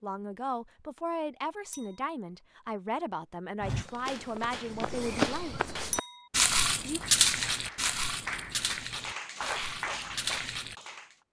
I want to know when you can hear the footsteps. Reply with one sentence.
You can hear the footsteps from 3.6 to 10.8 s.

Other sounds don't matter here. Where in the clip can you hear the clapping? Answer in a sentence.
You can hear the clapping from 3.9 to 11.2 s.